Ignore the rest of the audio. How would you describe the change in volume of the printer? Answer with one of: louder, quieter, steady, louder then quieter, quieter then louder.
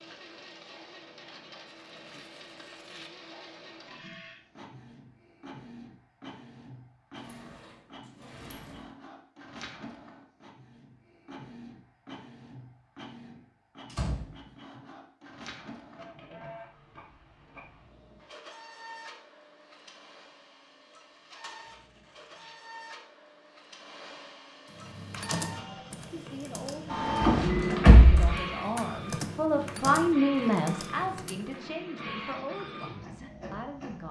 louder.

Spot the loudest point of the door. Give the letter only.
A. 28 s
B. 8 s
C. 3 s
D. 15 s
A.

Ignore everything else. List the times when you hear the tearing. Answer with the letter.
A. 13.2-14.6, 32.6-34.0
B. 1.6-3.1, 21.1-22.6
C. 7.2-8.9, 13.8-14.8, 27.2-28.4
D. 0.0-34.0
B.